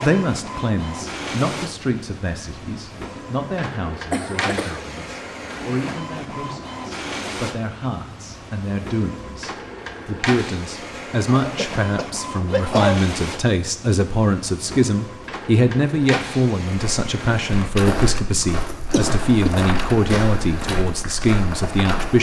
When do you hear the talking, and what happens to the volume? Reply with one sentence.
You can hear the talking from 0.0 to 22.1 s, getting louder.